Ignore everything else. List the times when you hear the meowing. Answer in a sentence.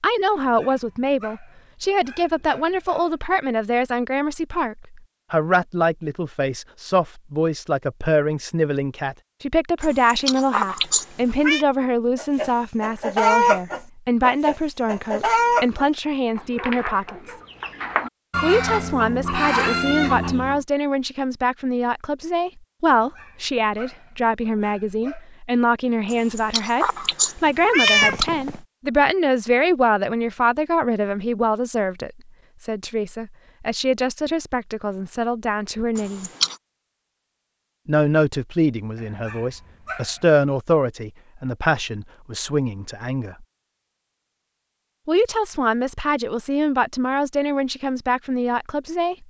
You can hear the meowing from 9.8 to 11.7 s, from 26.1 to 28.6 s and from 36.0 to 36.5 s.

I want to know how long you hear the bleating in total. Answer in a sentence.
You can't hear the bleating here.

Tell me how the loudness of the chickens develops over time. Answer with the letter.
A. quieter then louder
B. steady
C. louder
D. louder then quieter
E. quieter
A.